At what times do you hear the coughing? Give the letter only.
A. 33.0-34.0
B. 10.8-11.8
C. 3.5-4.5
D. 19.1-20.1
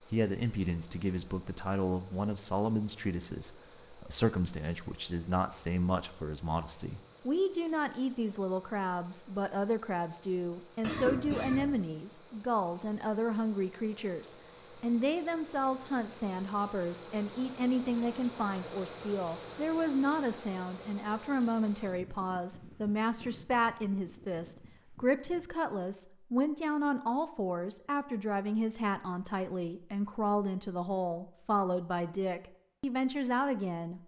B.